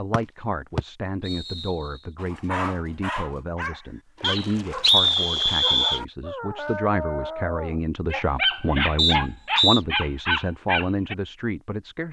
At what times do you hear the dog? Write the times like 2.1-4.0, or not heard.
2.1-11.2.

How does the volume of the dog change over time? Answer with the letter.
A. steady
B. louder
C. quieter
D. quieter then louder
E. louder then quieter
B.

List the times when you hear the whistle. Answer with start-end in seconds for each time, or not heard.
0.1-1.8, 4.2-6.0, 8.9-9.8.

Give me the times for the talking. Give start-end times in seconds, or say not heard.
0.0-12.0.